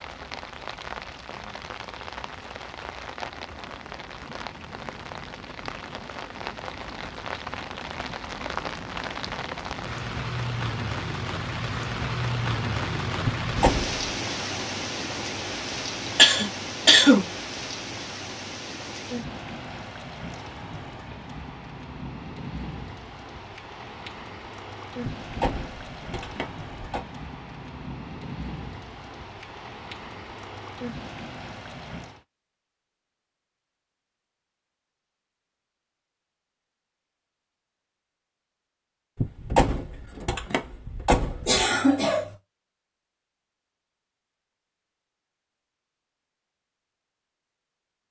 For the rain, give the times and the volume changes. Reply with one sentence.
The rain can be heard from 0.0 to 32.2 s, getting louder then quieter.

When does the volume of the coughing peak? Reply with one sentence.
The volume of the coughing peaks at 17 seconds.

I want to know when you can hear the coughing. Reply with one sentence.
The coughing can be heard from 16.1 to 17.2 s and from 41.5 to 42.3 s.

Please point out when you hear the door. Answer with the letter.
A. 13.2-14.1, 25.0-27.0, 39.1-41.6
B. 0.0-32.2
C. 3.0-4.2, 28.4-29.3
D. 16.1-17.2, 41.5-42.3
A.